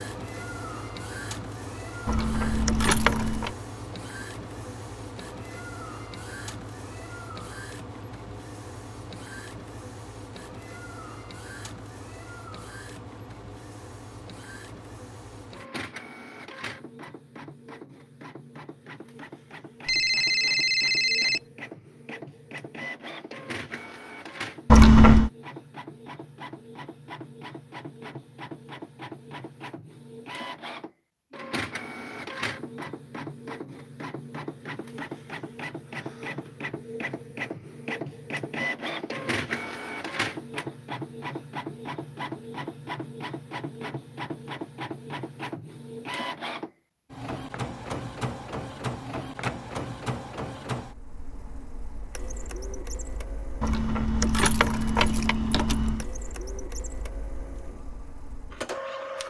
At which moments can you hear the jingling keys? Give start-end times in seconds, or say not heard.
2.0-3.5, 24.6-25.3, 53.6-56.0.